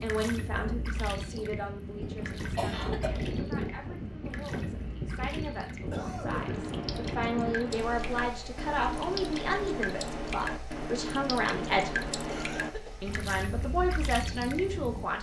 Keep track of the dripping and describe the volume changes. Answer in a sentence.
The volume of the dripping goes up.